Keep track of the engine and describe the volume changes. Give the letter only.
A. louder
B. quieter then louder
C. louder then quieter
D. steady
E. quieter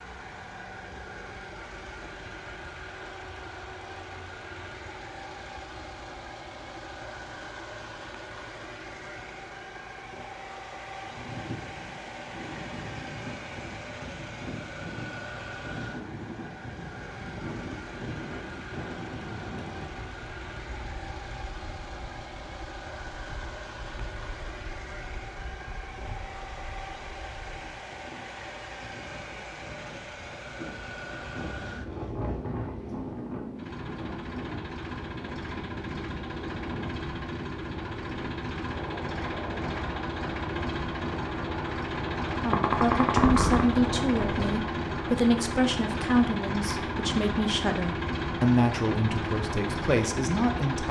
A.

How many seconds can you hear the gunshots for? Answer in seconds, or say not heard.
2 s.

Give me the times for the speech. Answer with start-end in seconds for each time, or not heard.
42.4-50.8.